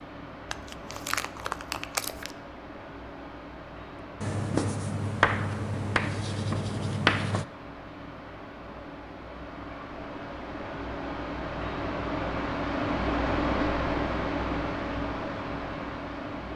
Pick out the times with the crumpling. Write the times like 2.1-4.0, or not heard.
0.5-2.4.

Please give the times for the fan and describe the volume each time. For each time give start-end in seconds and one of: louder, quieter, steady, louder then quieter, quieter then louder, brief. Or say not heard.
0.0-16.5 louder.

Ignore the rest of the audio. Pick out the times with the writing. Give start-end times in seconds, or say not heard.
4.2-7.5.